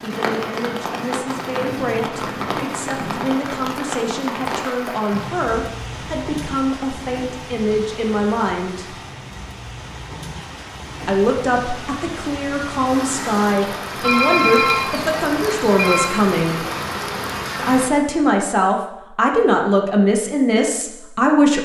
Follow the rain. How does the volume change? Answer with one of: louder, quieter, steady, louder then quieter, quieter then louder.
quieter then louder.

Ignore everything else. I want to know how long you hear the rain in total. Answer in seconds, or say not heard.
18 s.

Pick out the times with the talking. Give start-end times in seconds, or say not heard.
0.0-8.9, 11.1-16.6, 17.6-21.6.